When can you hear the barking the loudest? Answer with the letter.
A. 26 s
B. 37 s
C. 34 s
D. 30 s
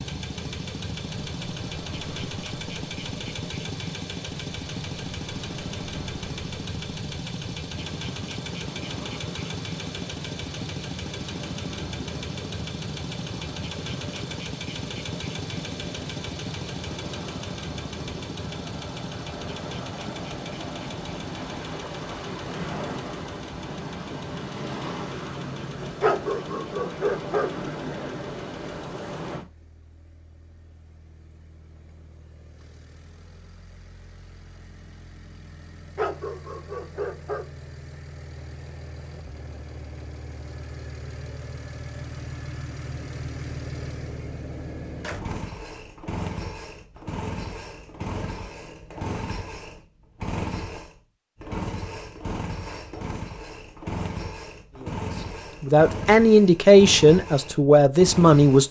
A.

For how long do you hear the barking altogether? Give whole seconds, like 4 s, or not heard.
3 s.